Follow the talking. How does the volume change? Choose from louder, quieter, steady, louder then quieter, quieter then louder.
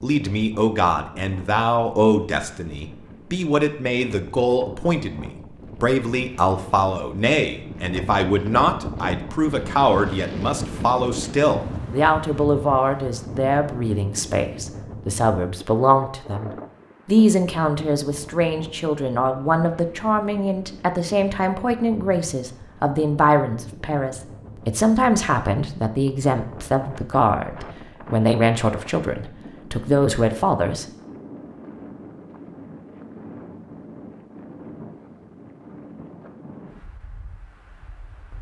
steady.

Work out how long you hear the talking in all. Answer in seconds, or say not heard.
31 s.